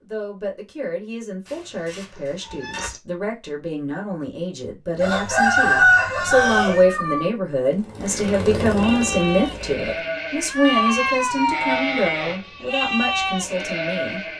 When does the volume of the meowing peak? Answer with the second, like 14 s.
11 s.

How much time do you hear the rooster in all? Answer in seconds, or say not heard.
2 s.